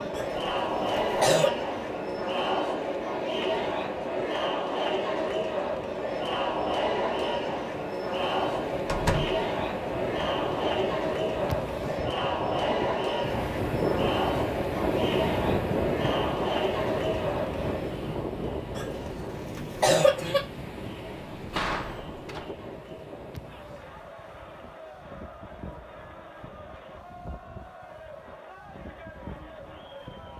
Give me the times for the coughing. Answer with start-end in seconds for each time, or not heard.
0.1-1.5, 18.8-20.4.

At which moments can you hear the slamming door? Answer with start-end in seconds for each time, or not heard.
8.8-9.4, 21.4-22.5.